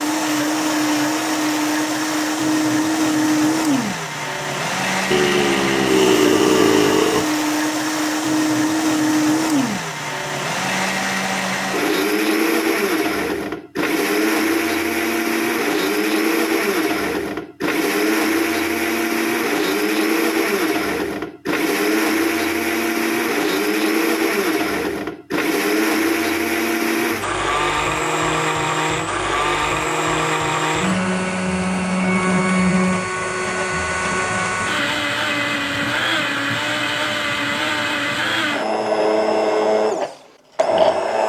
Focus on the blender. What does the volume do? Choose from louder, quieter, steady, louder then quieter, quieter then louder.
steady.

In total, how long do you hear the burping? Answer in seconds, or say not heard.
2 s.